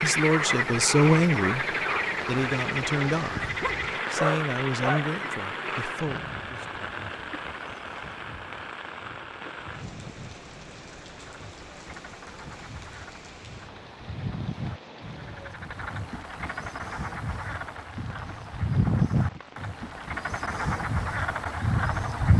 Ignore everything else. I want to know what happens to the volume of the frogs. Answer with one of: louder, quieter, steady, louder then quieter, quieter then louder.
quieter then louder.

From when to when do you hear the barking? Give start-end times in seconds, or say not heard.
3.6-5.0.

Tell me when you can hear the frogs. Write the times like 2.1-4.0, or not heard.
0.0-22.3.